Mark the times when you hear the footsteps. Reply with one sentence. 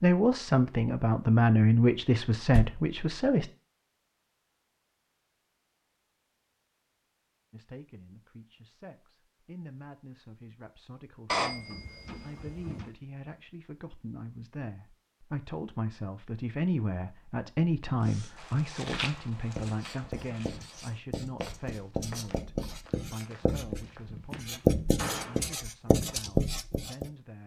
You can hear the footsteps from 18.4 to 24.6 s.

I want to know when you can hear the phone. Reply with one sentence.
You can hear the phone from 11.2 to 12.9 s.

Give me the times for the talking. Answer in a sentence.
You can hear the talking from 0.0 to 3.5 s and from 7.5 to 27.4 s.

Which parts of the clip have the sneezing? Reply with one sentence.
You can't hear the sneezing here.